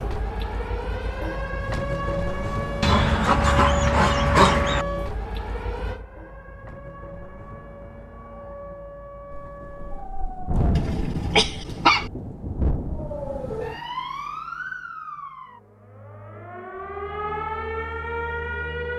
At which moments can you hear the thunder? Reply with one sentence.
You can hear the thunder from 9.3 to 13.8 s.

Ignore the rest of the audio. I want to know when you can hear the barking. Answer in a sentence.
The barking can be heard from 2.8 to 4.8 s and from 10.8 to 12.1 s.